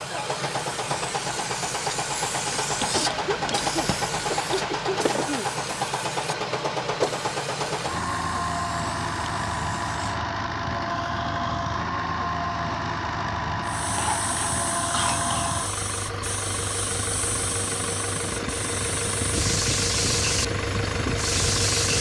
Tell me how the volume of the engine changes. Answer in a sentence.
The volume of the engine stays about the same.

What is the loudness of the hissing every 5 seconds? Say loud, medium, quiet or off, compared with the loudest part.
medium, quiet, medium, medium, loud.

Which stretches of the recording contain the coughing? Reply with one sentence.
The coughing can be heard from 2.9 to 5.5 s and from 13.9 to 15.5 s.